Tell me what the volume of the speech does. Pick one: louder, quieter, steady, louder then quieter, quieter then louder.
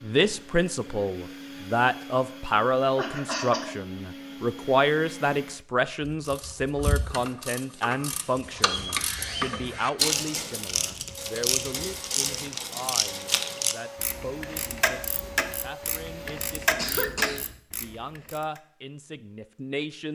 quieter.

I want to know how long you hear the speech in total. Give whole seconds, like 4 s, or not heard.
20 s.